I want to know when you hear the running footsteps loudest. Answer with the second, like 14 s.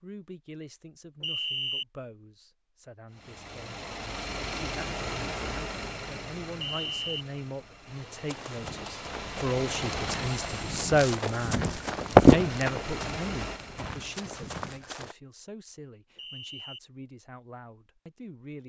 12 s.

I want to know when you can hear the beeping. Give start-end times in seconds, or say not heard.
1.2-1.9, 6.8-7.2, 16.1-16.8.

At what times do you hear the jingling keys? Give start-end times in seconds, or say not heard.
not heard.